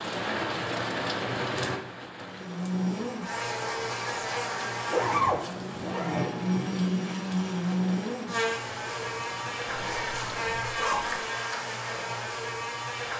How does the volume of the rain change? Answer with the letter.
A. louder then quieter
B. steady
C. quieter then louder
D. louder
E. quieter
E.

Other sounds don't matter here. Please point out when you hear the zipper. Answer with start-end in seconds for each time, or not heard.
1.1-1.8, 4.9-6.3, 9.7-11.2.